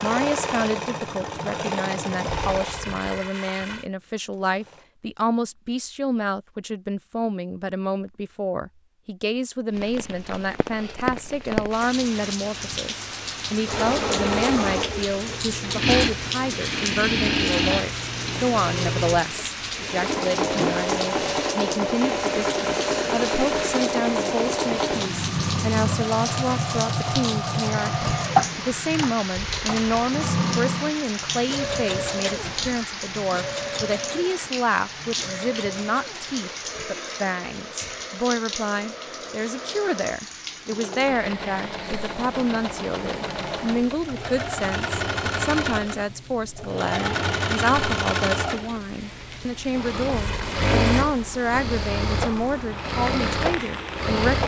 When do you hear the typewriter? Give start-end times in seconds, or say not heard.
not heard.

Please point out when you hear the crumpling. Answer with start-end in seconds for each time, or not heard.
2.2-3.9, 29.3-30.1, 50.1-51.0.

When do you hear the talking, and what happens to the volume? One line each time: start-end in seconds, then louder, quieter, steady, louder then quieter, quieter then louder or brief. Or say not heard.
0.0-54.4 steady.